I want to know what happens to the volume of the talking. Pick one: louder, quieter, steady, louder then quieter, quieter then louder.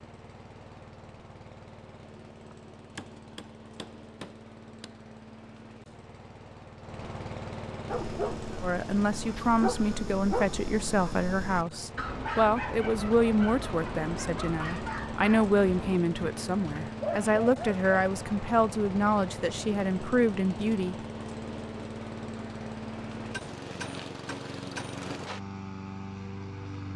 steady.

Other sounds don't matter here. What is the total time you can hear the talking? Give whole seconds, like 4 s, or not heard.
12 s.